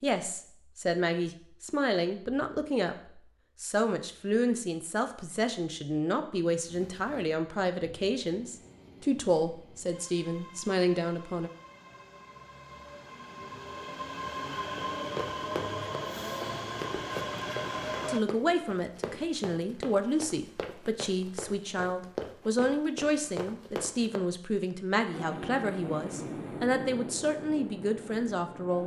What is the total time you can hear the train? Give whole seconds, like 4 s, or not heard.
15 s.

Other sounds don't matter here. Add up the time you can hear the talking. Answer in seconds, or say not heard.
22 s.